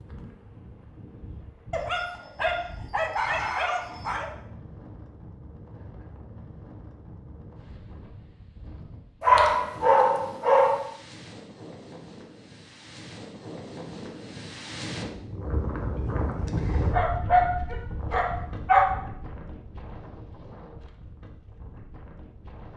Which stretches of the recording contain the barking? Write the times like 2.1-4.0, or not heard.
1.7-4.3, 9.2-10.8, 16.9-18.9.